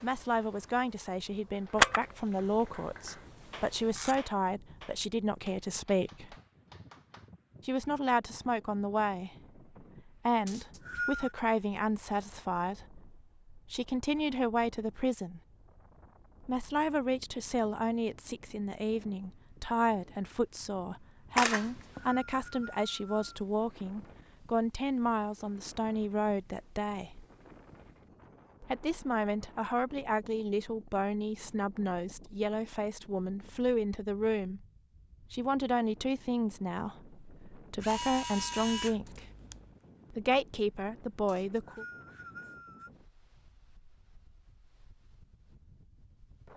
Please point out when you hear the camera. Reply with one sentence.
The camera can be heard from 1.8 to 4.2 s, from 21.4 to 22.0 s and from 37.8 to 39.6 s.